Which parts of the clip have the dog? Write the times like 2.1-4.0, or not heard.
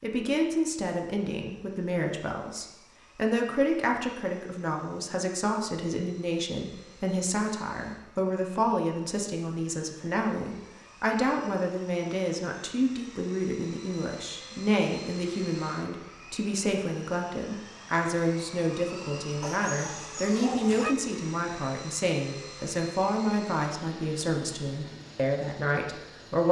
19.4-20.9.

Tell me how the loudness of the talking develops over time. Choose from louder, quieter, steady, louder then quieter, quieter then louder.
steady.